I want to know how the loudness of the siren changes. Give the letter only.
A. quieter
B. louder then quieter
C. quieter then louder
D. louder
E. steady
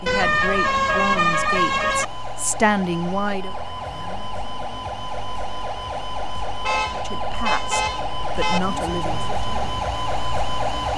D.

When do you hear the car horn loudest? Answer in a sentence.
The volume of the car horn peaks at 1 second.